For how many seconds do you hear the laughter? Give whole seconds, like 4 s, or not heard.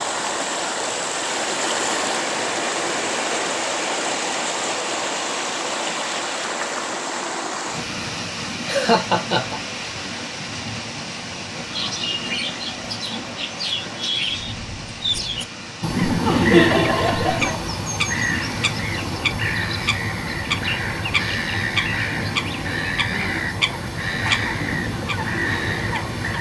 3 s.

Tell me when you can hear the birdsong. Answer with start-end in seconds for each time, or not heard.
11.7-26.3.